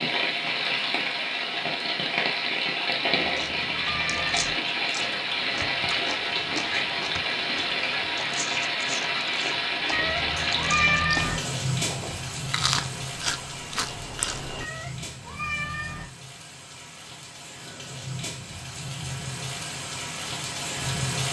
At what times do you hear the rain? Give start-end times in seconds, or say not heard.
0.0-21.2.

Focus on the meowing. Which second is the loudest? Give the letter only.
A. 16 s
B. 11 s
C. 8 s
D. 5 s
B.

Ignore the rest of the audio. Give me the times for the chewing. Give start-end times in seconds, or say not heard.
3.2-14.7.